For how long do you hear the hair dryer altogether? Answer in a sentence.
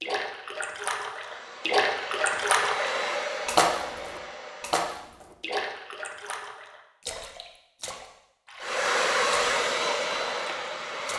You can hear the hair dryer for 6 seconds altogether.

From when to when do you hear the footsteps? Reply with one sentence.
The footsteps can't be heard in this clip.